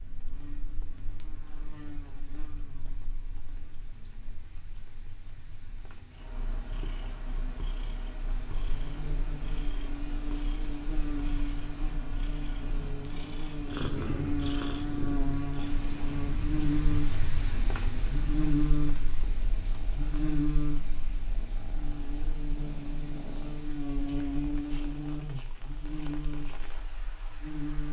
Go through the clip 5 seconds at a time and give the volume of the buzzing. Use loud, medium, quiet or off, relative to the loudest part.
quiet, quiet, medium, loud, loud, medium.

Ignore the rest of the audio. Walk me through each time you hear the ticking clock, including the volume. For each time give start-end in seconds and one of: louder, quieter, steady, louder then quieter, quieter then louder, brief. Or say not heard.
not heard.